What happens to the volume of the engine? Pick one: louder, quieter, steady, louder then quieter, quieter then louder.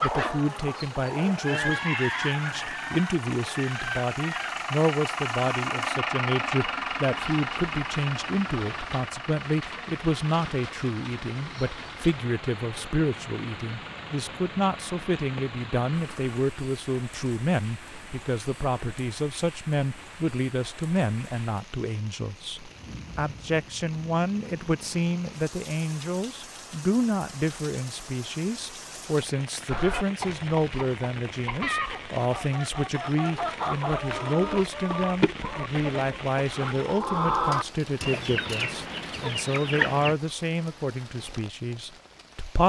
louder then quieter.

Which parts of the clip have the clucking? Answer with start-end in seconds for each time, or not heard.
0.0-4.6, 29.6-40.1.